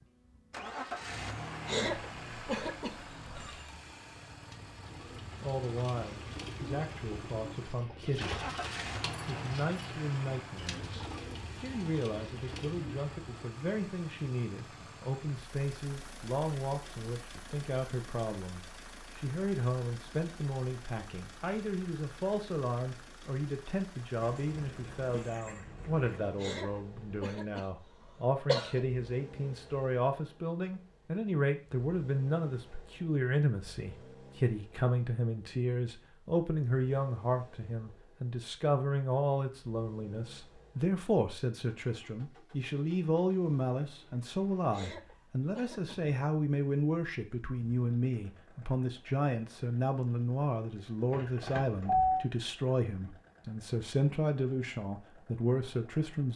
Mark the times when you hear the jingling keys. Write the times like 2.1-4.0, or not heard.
3.2-3.9, 24.2-26.2, 51.1-52.2.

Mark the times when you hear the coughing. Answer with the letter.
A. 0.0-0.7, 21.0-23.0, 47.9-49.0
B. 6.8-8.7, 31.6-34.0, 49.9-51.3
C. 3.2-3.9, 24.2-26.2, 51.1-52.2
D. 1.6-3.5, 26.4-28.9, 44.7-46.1
D.